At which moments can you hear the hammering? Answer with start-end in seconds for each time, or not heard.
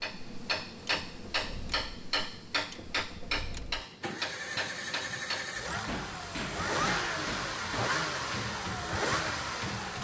0.0-9.9.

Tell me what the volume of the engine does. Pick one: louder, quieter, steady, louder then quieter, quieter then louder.
louder.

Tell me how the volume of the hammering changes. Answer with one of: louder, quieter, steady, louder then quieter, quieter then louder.
quieter.